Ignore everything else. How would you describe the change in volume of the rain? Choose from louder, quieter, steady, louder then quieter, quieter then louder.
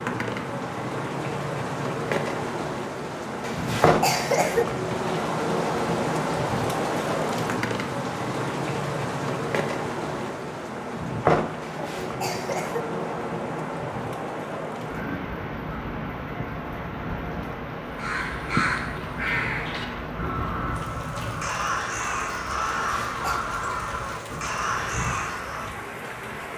quieter.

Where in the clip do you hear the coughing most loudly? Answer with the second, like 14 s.
4 s.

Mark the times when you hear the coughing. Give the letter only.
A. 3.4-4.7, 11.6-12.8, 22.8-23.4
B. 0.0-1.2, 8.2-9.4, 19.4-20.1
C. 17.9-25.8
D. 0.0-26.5
A.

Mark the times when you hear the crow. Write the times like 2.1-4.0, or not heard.
17.9-25.8.